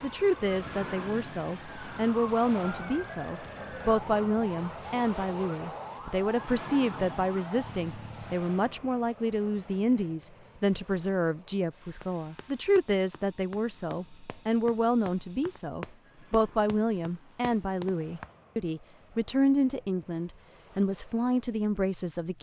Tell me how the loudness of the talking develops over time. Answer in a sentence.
The loudness of the talking stays about the same.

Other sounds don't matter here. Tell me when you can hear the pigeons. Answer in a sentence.
You can't hear the pigeons here.